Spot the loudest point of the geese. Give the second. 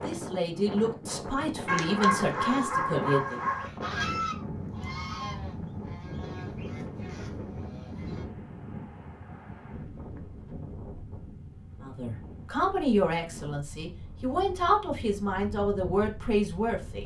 4 s.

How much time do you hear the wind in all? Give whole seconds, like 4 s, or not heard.
17 s.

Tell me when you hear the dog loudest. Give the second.
2 s.